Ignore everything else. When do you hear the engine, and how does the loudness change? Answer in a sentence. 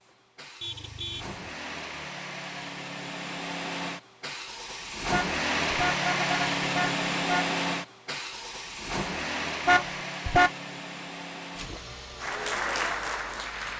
You can hear the engine from 0.0 to 13.7 s, getting louder then quieter.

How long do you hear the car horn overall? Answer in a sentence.
You can hear the car horn for 4 seconds altogether.